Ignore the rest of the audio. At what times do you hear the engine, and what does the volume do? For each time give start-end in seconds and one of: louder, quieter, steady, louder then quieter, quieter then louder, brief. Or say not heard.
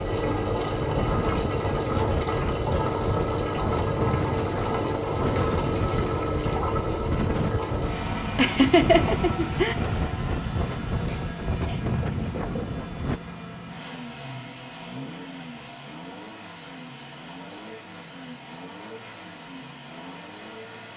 0.0-20.9 quieter.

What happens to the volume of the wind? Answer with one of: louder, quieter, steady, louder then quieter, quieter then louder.
steady.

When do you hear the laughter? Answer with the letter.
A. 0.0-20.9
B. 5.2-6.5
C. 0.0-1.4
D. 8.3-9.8
D.